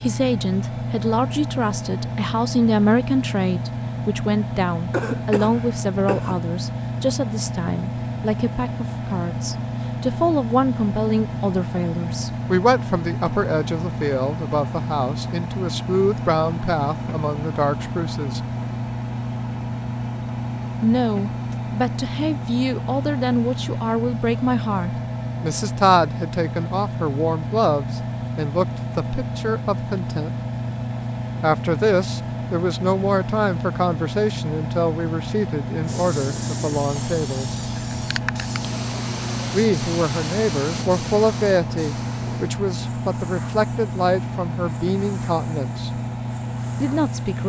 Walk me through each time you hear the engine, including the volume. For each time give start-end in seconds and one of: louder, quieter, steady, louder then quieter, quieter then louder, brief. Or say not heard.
0.0-47.4 steady.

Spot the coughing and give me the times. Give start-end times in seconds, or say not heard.
4.9-6.3.